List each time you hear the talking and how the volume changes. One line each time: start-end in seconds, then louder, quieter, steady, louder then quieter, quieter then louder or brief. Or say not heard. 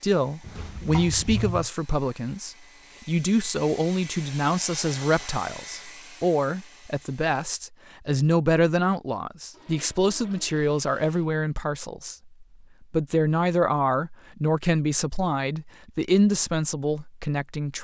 0.0-17.7 steady.